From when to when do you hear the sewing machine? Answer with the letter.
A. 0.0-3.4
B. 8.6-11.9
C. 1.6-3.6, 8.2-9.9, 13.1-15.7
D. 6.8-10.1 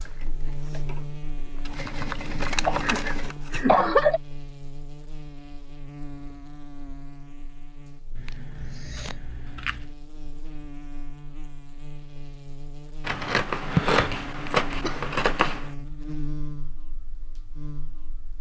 A.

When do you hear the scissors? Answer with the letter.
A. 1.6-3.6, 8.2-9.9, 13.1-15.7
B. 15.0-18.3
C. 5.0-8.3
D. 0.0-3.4
A.